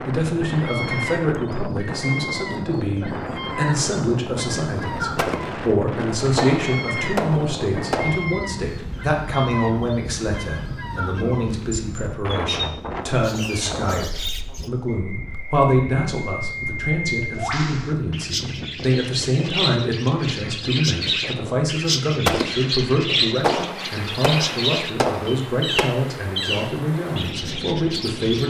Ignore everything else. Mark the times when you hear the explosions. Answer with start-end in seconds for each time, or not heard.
5.2-8.3, 22.2-25.9.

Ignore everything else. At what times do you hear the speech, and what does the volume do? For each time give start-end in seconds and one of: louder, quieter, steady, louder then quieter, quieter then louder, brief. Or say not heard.
0.0-28.4 steady.